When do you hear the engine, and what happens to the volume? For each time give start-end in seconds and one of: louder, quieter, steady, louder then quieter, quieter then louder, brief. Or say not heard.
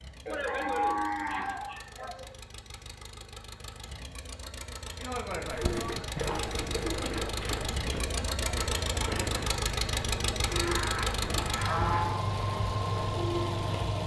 0.0-14.0 louder.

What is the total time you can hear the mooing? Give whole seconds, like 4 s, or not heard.
5 s.